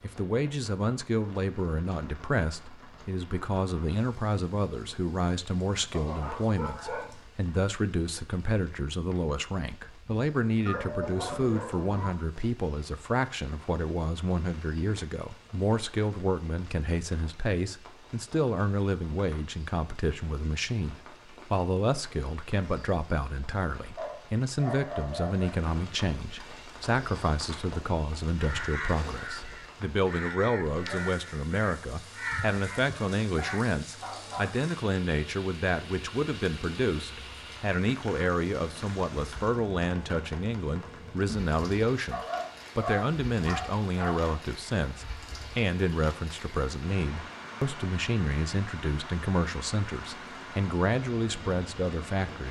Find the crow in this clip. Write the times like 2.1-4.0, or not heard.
28.4-33.6.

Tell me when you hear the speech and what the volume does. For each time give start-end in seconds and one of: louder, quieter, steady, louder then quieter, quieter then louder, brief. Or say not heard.
0.0-52.4 steady.